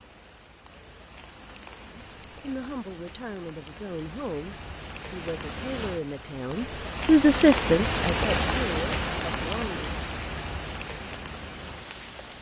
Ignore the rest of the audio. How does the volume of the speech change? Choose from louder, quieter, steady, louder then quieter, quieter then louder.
louder then quieter.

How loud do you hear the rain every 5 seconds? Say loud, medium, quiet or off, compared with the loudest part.
quiet, loud, medium.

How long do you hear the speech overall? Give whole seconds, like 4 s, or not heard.
8 s.